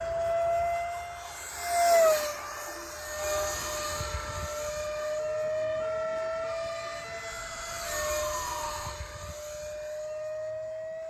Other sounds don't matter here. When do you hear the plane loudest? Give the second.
2 s.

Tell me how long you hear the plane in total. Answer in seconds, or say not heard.
11 s.